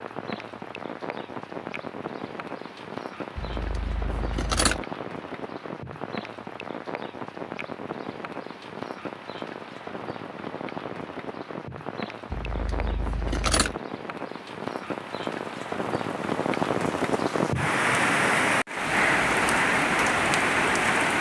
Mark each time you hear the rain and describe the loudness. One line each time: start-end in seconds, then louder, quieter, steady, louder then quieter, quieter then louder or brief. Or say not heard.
0.0-21.1 louder.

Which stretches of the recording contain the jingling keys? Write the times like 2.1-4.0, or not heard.
3.4-4.8, 12.3-13.8.